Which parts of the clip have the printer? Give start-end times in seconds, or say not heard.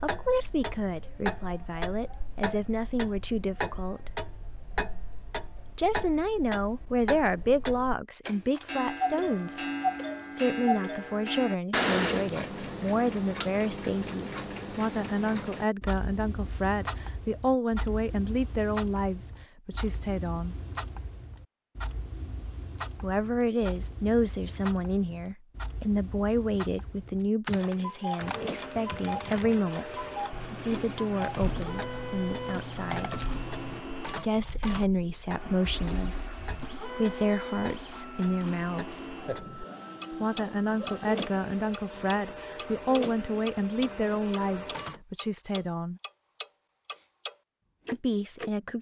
28.1-45.0.